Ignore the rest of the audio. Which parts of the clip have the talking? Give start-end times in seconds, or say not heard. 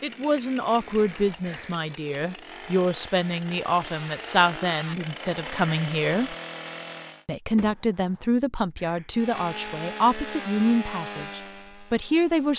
0.0-6.3, 7.2-12.5.